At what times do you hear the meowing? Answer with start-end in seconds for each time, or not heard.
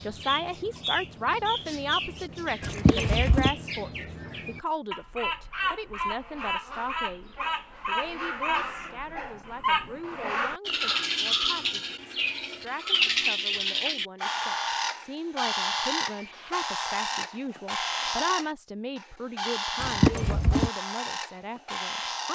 2.6-3.5, 19.8-20.7.